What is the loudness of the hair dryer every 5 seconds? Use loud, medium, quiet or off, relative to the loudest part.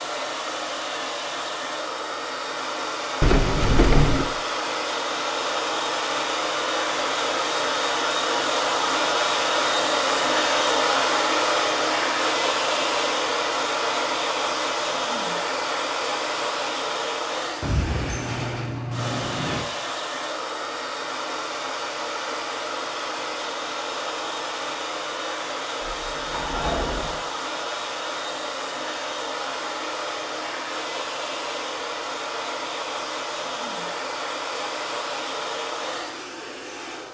medium, loud, loud, medium, medium, medium, medium, medium.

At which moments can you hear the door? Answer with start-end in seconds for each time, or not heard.
3.2-4.2, 17.6-19.6, 25.8-27.2.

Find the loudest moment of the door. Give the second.
4 s.